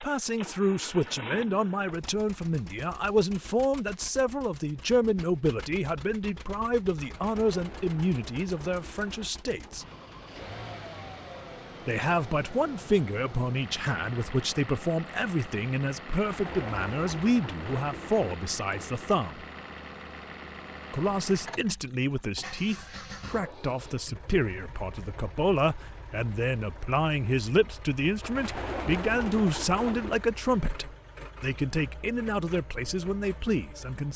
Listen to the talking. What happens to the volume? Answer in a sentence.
The volume of the talking stays about the same.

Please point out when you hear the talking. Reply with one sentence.
The talking can be heard from 0.0 to 9.8 s, from 11.8 to 19.4 s and from 20.9 to 34.1 s.